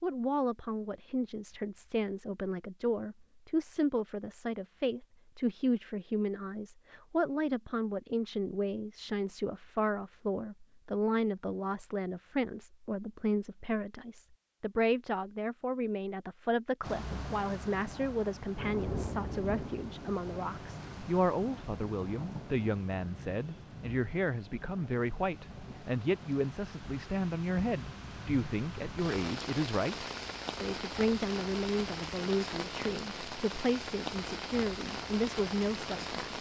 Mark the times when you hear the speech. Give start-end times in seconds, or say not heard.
0.0-36.3.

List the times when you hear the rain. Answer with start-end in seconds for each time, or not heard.
16.8-36.3.